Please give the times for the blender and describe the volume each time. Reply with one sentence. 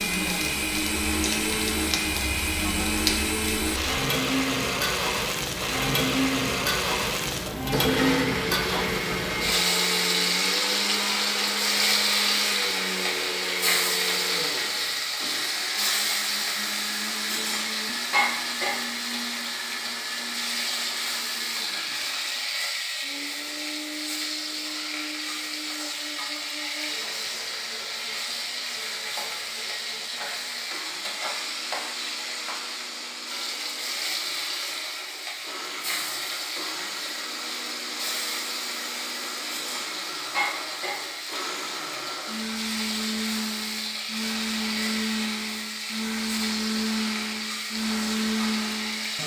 The blender can be heard from 0.0 to 49.2 s, getting quieter then louder.